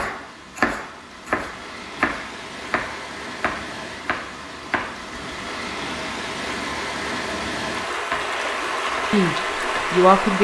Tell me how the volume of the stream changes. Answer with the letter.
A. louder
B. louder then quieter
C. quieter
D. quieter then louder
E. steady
A.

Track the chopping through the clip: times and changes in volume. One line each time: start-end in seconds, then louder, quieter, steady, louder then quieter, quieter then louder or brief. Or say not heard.
0.0-5.0 quieter
8.1-10.0 brief.